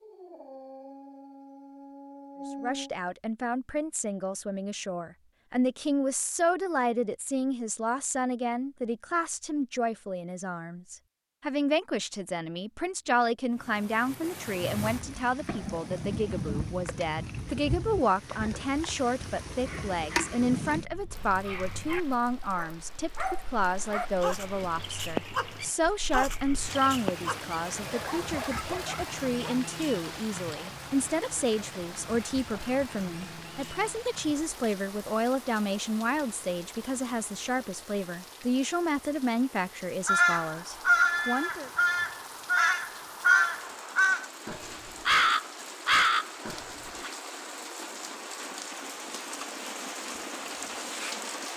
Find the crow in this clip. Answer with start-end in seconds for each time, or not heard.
40.0-47.1.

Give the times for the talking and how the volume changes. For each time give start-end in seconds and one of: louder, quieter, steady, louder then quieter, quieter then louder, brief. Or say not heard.
2.6-41.7 steady.